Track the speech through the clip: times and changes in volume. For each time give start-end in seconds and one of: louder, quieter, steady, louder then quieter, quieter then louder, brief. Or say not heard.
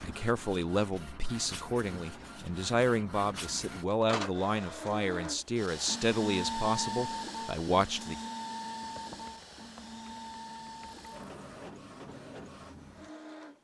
0.0-8.2 steady.